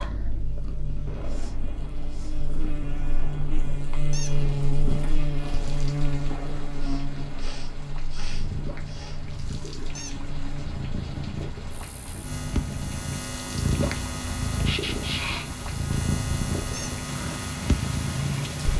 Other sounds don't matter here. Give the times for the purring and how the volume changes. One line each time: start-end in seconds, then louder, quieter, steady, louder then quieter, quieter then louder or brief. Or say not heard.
0.0-18.7 louder.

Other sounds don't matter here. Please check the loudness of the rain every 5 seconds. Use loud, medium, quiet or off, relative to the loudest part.
medium, medium, medium, loud.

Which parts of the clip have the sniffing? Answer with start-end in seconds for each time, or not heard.
1.2-2.4, 6.8-9.3, 14.6-15.5.